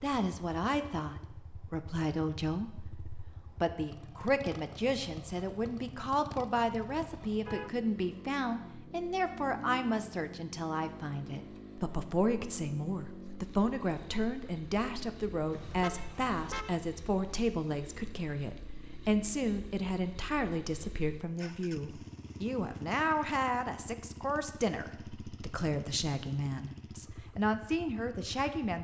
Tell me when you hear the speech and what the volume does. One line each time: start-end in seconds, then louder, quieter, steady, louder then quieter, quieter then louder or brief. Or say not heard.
0.0-28.7 steady.